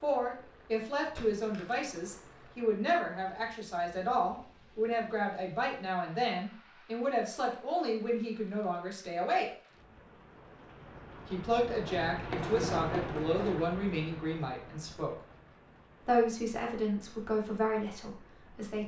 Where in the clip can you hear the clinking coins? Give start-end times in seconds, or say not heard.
1.1-2.5, 11.8-13.7.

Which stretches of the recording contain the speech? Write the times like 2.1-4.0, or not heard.
0.0-9.4, 11.3-15.2, 16.1-18.8.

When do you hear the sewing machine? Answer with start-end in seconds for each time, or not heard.
not heard.